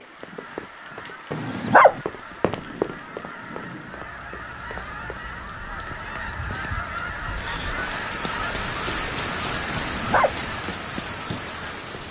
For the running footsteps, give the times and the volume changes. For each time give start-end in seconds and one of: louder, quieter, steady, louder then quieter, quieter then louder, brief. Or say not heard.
0.0-5.2 louder then quieter.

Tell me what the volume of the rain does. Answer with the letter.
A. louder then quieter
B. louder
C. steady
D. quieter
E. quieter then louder
B.